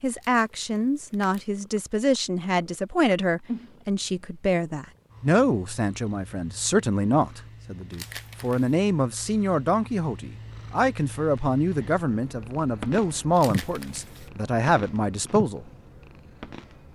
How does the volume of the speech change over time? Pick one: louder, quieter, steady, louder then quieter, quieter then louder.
steady.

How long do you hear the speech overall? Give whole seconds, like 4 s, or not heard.
16 s.